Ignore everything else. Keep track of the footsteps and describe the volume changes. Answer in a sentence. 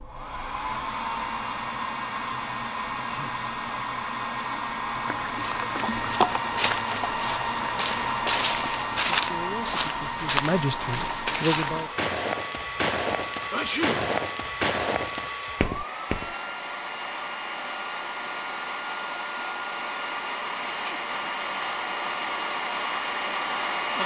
The volume of the footsteps stays about the same.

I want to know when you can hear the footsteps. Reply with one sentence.
You can hear the footsteps from 5.4 to 16.4 s.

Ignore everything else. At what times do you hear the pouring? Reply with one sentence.
The pouring can be heard from 5.0 to 6.2 s.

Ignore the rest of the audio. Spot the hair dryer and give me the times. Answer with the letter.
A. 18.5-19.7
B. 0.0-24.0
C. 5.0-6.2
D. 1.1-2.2
B.